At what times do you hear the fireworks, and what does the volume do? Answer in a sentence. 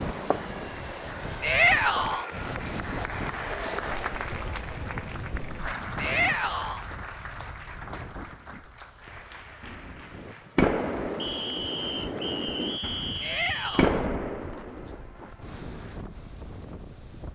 You can hear the fireworks briefly from 0.0 to 2.4 s; and from 9.6 to 15.0 s, getting quieter then louder.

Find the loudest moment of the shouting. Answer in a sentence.
The loudest moment of the shouting is at 2 seconds.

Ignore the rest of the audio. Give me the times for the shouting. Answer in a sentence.
The shouting can be heard from 1.4 to 2.2 s, from 6.0 to 6.8 s and from 13.2 to 14.1 s.